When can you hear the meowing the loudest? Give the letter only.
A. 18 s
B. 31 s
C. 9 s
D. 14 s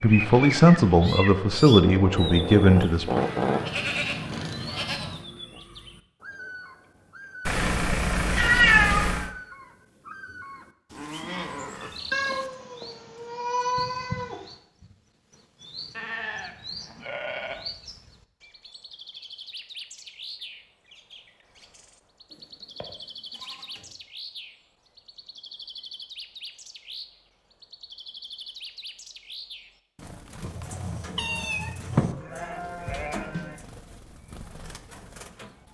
C.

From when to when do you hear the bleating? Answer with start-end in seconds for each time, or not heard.
3.1-5.2, 10.9-12.5, 15.9-17.6, 22.3-23.9, 31.9-33.6.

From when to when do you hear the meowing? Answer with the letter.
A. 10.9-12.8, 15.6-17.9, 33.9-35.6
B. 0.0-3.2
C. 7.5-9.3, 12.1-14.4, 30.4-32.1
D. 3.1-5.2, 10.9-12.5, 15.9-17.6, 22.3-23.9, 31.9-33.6
C.